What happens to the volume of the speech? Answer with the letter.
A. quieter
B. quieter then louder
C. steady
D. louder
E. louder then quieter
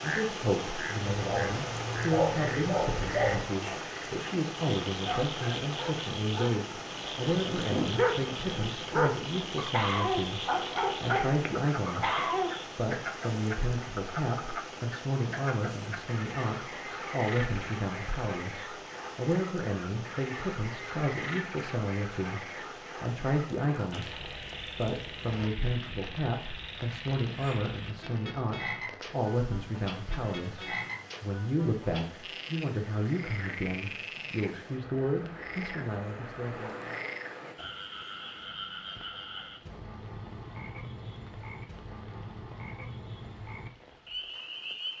C.